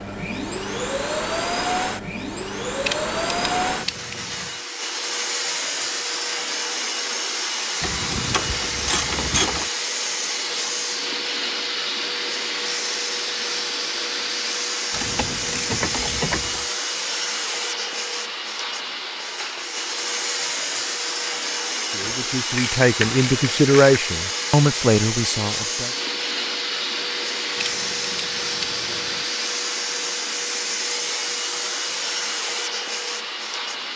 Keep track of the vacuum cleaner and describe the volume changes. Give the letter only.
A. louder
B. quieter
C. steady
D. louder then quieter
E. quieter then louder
C.